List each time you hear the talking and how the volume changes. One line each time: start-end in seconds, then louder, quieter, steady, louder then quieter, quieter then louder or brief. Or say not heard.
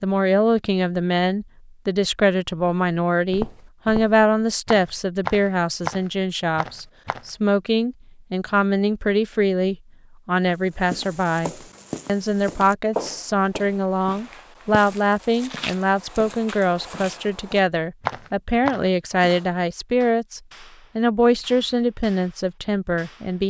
0.0-23.4 steady.